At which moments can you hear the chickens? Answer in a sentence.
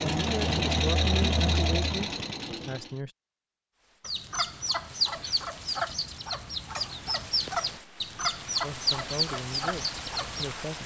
The chickens can be heard from 4.0 to 10.7 s.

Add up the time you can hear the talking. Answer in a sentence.
The talking can be heard for 5 seconds in total.